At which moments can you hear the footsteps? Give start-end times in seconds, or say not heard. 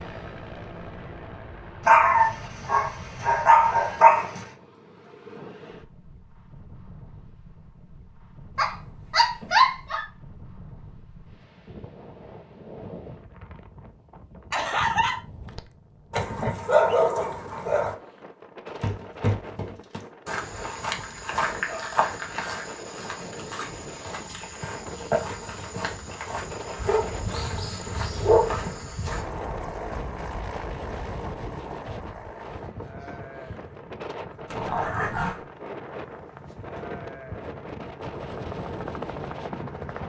18.6-29.2.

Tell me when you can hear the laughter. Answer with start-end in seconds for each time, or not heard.
14.5-15.2.